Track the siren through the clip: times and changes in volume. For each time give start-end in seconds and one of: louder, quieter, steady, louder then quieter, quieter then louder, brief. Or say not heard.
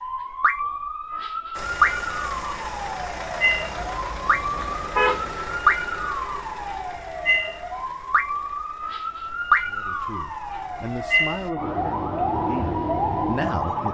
0.0-13.8 steady.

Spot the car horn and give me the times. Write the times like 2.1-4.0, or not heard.
4.2-5.3.